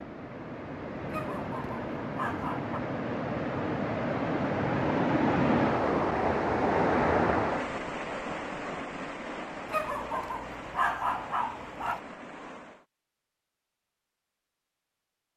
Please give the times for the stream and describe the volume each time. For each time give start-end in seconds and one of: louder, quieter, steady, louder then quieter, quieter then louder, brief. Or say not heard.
0.0-12.8 louder then quieter.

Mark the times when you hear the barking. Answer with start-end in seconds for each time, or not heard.
1.1-2.8, 9.7-12.0.